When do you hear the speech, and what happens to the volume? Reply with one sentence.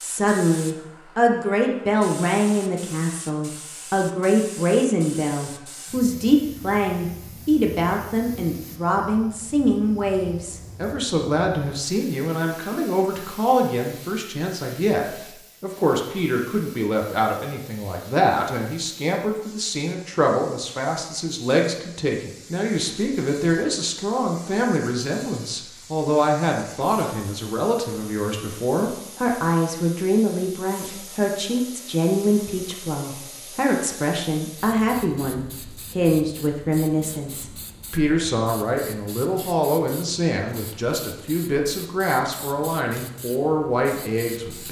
The speech can be heard from 0.0 to 44.6 s, at a steady volume.